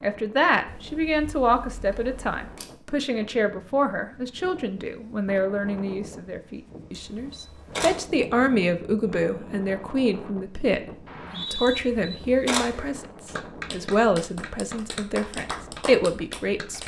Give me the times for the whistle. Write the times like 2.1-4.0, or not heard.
11.1-11.8.